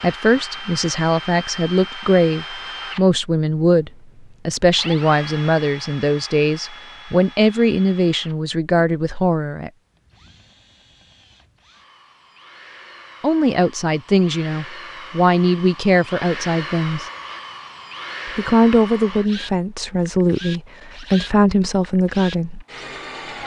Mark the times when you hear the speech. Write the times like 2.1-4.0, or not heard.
0.0-9.7, 13.2-17.1, 18.2-22.6.